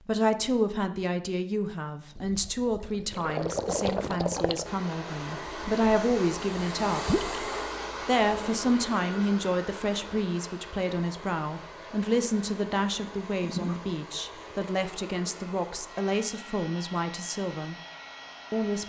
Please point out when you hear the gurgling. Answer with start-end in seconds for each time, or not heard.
2.1-4.7, 7.0-7.5, 13.4-13.8.